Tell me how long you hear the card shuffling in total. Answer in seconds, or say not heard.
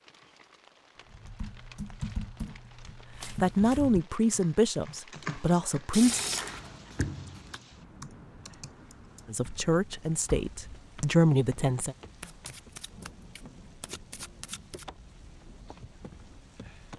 5 s.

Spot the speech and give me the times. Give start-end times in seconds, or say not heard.
3.4-6.2, 9.3-11.9.